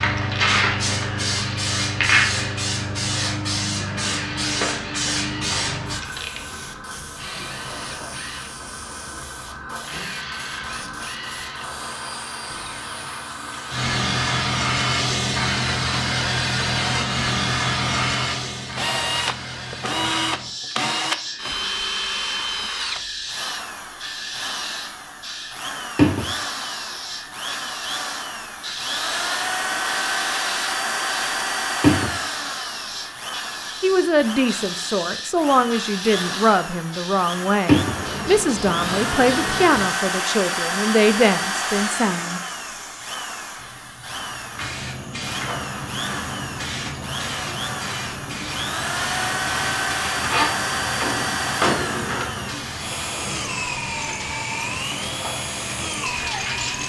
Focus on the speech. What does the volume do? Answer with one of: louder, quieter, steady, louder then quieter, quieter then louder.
steady.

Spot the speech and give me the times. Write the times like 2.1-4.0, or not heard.
33.8-42.4.